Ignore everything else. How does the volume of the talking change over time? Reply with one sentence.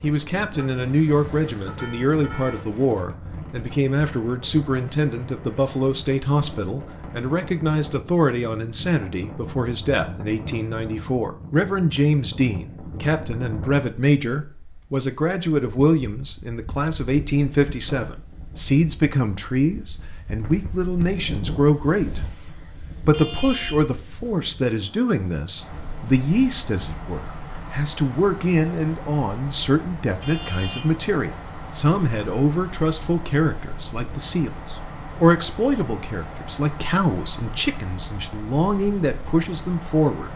The loudness of the talking stays about the same.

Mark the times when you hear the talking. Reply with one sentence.
The talking can be heard from 0.0 to 22.2 s and from 23.1 to 40.3 s.